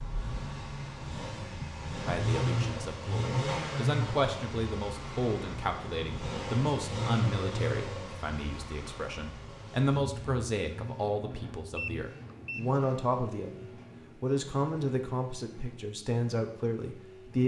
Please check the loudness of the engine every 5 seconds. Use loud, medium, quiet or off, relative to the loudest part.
loud, loud, medium, quiet.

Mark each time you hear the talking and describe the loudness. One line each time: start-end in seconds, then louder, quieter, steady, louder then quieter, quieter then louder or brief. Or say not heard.
2.0-17.4 steady.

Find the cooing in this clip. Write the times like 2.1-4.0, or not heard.
not heard.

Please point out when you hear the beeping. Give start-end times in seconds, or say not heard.
11.8-12.6.